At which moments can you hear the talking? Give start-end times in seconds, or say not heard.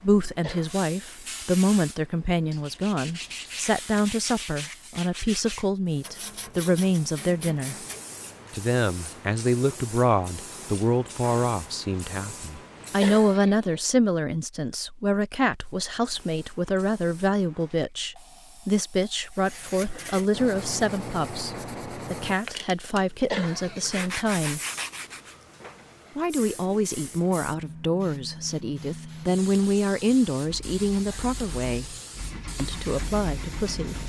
0.0-7.8, 8.5-24.6, 26.1-31.9, 32.5-34.0.